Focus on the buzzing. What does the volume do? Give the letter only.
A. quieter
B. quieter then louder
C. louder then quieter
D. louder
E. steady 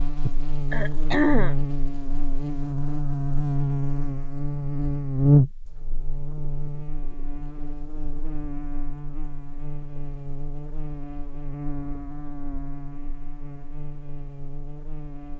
C.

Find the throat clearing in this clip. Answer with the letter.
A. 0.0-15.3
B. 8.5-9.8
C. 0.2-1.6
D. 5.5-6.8
C.